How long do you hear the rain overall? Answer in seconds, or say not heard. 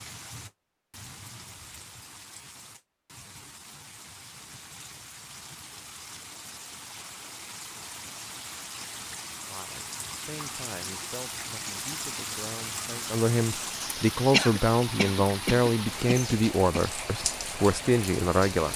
19 s.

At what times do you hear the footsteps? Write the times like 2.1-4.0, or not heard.
not heard.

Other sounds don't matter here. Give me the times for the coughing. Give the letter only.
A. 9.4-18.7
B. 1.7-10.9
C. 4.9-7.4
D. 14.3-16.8
D.